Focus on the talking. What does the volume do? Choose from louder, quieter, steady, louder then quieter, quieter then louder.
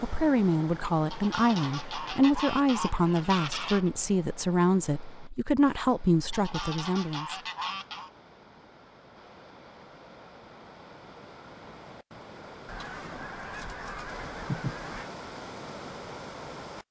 steady.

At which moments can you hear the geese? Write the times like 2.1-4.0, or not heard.
1.1-3.9, 6.3-8.1, 12.7-15.1.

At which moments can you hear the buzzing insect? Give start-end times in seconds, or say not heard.
not heard.